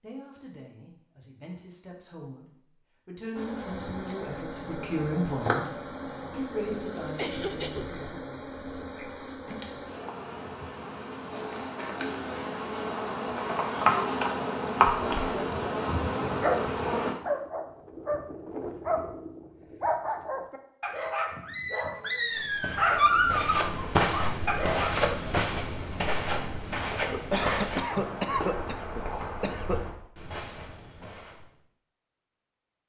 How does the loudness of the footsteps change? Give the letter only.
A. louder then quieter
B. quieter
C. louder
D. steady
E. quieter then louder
B.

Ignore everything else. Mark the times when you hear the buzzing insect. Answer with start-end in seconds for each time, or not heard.
3.4-17.1.